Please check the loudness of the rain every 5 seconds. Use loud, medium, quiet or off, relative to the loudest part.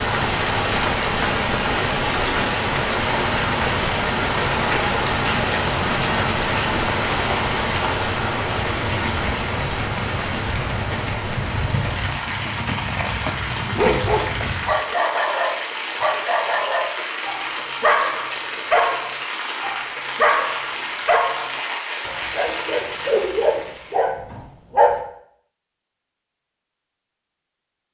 loud, loud, medium, medium, medium, off.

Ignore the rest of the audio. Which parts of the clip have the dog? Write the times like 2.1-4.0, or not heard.
13.7-25.0.